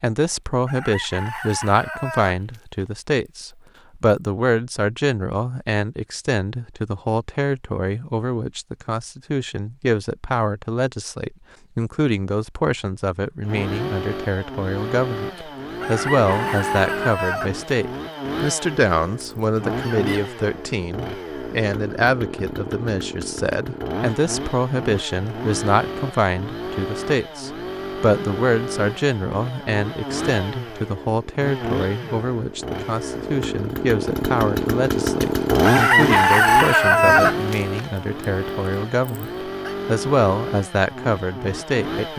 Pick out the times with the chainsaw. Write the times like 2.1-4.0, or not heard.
13.4-42.1.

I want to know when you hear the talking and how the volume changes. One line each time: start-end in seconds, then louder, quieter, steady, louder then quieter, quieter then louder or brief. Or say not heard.
0.0-42.1 steady.